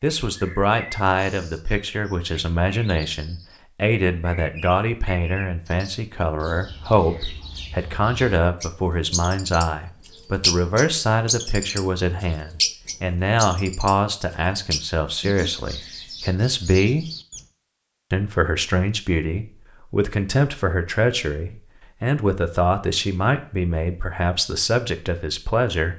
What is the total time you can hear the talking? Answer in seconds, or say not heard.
25 s.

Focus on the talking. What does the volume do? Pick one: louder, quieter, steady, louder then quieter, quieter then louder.
steady.